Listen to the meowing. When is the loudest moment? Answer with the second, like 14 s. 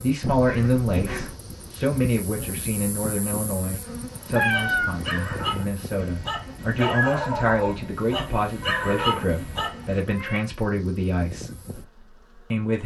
5 s.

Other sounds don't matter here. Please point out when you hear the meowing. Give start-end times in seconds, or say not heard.
0.2-1.4, 4.3-5.5, 8.6-10.4.